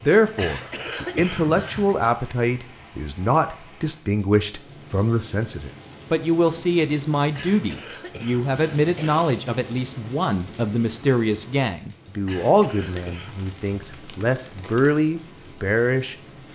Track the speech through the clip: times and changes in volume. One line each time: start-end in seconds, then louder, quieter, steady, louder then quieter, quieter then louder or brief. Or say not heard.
0.0-16.5 steady.